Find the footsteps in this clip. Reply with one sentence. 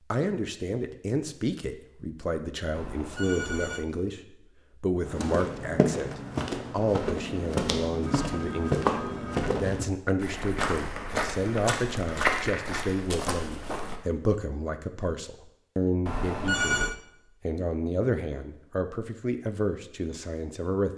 The footsteps can be heard from 5.0 to 14.0 s.